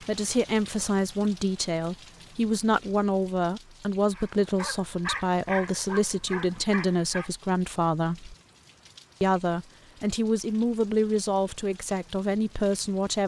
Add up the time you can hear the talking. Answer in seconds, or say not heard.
12 s.